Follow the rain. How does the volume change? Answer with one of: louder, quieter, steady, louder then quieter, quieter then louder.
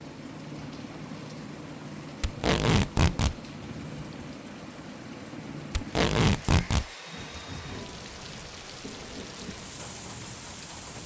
steady.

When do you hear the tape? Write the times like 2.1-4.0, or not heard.
2.2-3.4, 5.7-6.8.